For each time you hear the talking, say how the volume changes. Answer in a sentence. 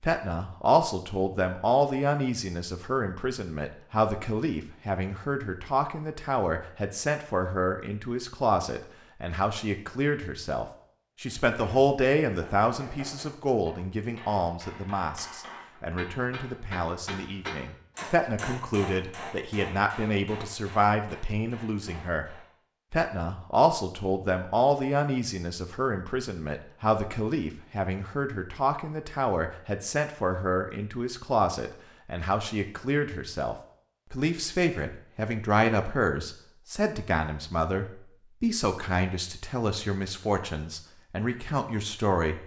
The talking can be heard from 0.0 to 42.4 s, at a steady volume.